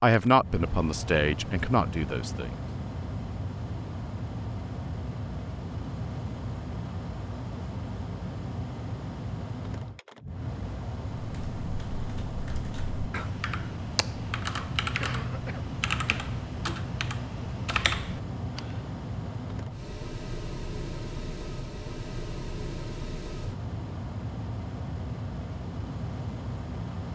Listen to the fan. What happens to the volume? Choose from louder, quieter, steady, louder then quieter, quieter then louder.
steady.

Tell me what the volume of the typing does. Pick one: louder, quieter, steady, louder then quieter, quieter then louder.
louder.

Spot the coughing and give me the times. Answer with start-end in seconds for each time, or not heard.
15.0-16.2.